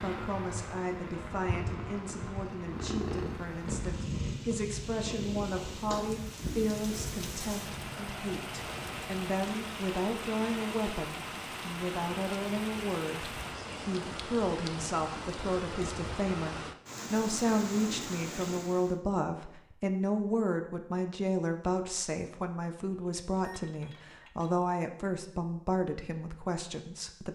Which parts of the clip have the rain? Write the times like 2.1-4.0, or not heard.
0.0-19.0.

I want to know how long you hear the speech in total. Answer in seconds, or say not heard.
27 s.